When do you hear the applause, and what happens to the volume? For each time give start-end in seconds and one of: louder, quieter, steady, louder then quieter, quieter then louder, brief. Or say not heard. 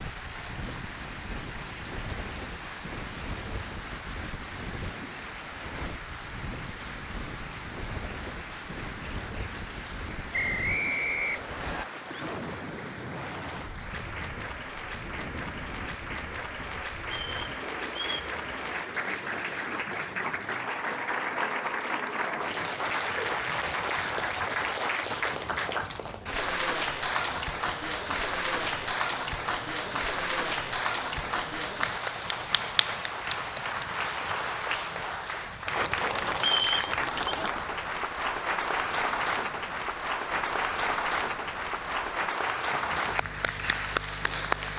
0.0-44.7 louder.